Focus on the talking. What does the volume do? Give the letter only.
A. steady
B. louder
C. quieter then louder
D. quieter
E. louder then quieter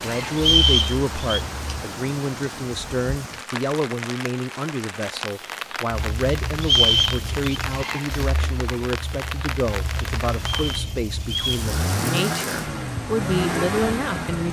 A.